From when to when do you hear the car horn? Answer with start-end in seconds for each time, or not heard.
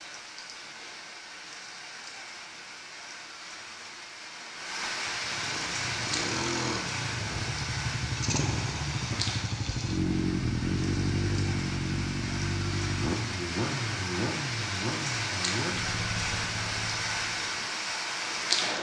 not heard.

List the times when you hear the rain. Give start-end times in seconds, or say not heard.
0.0-18.7.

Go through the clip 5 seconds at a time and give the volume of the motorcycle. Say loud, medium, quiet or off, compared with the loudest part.
off, loud, loud, medium.